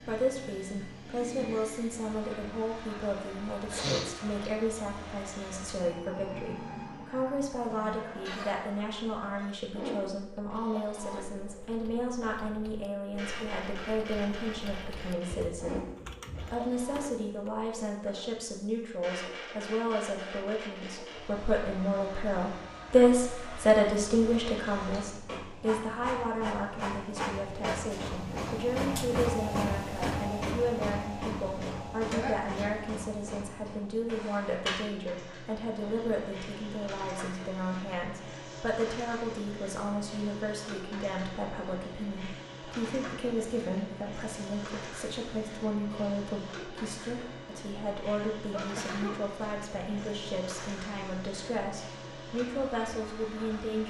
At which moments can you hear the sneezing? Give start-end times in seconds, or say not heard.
3.7-4.3, 32.1-32.7, 48.5-49.2.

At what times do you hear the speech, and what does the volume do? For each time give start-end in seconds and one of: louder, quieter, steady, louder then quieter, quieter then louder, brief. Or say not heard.
0.0-15.8 steady
16.5-53.8 quieter.